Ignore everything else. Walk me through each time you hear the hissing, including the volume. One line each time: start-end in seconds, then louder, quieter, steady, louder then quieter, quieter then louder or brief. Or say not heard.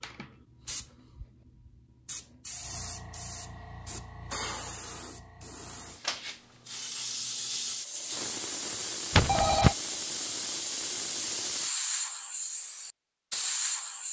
0.0-14.0 louder.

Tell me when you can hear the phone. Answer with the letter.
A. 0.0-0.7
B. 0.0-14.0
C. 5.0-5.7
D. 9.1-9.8
D.